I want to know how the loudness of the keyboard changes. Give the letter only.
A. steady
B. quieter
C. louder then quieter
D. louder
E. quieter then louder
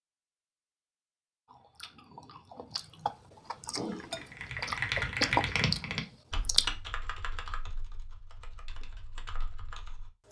E.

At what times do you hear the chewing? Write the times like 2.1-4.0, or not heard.
1.5-6.7.